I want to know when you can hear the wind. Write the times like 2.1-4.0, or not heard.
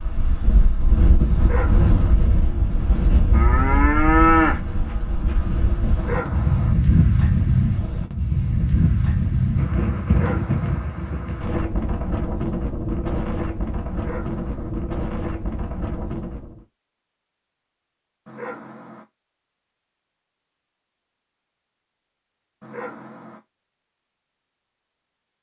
0.0-16.6.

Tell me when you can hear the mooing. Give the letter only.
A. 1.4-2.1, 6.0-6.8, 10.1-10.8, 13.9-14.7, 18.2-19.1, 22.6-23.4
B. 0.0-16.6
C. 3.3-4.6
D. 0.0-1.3
C.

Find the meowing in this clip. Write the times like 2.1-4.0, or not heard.
not heard.